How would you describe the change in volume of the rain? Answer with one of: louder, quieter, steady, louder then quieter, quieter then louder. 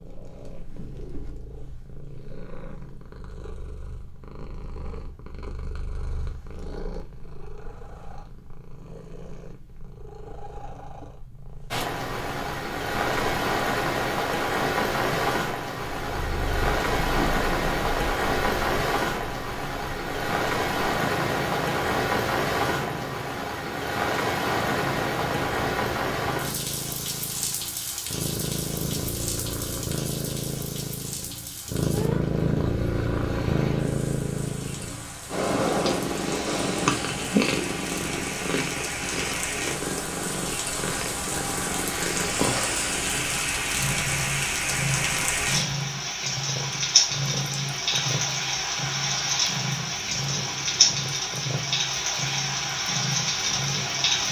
quieter then louder.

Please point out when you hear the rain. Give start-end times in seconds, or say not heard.
11.7-54.2.